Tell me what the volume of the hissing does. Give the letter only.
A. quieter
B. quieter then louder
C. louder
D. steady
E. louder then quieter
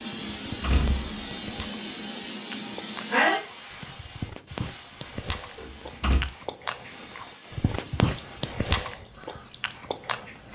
E.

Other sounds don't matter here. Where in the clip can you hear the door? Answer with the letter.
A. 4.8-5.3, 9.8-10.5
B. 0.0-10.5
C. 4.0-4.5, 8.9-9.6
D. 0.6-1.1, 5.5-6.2
D.